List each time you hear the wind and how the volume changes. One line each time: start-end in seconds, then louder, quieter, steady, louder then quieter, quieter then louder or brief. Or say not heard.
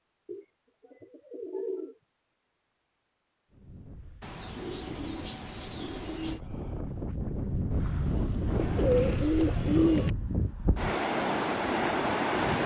3.5-12.6 louder.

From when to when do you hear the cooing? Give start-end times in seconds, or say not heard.
0.2-1.9, 4.2-6.4, 8.6-10.1.